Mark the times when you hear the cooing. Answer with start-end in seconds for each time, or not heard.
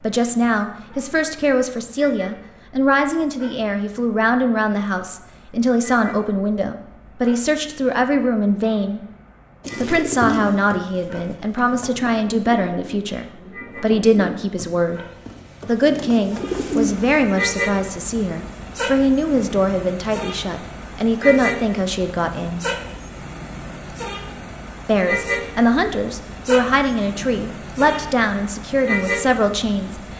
9.6-17.2.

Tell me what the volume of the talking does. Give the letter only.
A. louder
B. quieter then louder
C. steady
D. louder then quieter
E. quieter
C.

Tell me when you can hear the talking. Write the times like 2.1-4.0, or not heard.
0.0-9.0, 9.8-15.0, 15.7-22.6, 24.9-30.0.